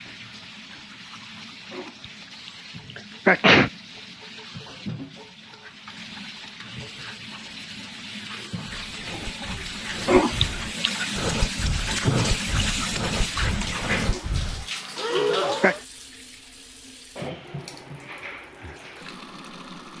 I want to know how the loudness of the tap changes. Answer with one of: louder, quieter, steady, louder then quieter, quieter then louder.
louder then quieter.